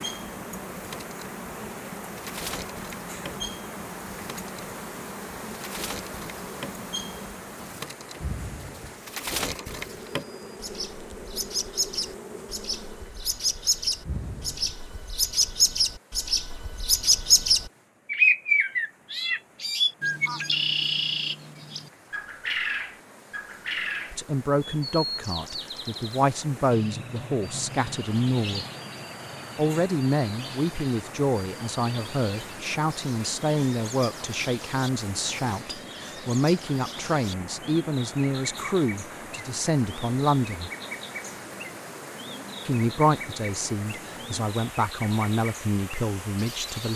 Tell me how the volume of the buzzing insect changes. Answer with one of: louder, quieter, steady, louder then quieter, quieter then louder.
steady.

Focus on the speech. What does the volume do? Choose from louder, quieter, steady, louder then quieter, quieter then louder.
steady.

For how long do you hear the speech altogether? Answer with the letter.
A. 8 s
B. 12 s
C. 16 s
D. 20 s
D.